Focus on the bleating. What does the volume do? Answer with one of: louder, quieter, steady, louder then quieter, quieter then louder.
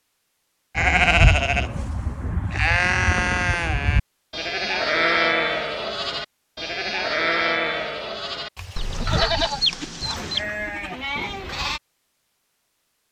quieter.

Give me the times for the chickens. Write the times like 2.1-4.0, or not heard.
8.8-10.4.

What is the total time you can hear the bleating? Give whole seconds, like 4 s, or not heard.
11 s.